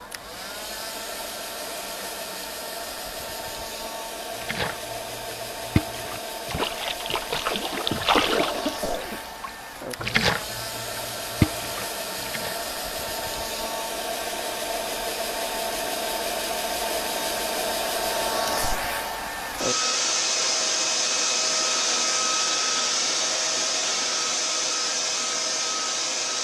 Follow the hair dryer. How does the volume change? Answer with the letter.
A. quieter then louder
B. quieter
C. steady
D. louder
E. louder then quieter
D.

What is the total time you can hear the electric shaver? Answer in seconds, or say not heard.
not heard.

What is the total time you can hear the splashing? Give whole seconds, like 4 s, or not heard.
8 s.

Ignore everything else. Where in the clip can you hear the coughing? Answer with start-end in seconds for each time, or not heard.
8.3-9.7.